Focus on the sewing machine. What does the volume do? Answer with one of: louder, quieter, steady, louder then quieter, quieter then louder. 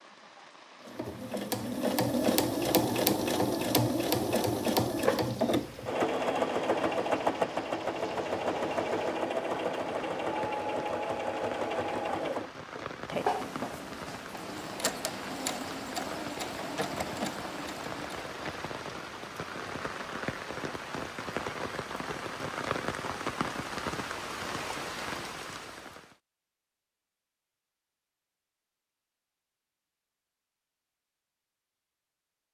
quieter.